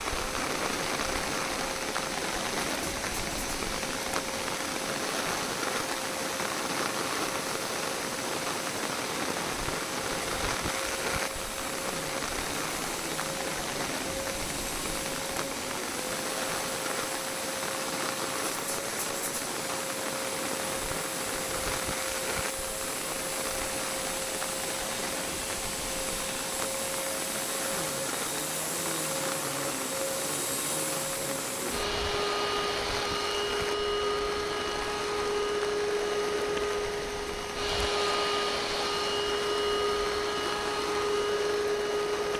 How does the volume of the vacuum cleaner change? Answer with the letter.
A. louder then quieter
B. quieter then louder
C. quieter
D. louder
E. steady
D.